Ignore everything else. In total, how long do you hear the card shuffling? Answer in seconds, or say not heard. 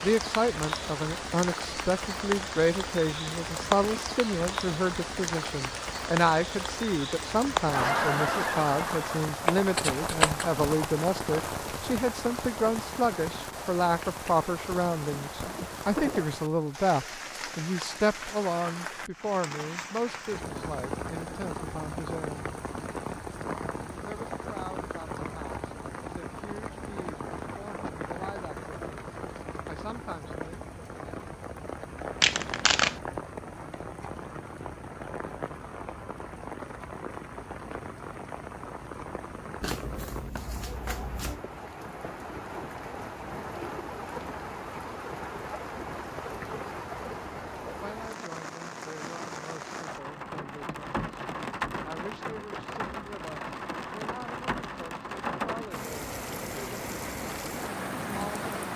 4 s.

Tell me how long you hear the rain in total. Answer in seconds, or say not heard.
59 s.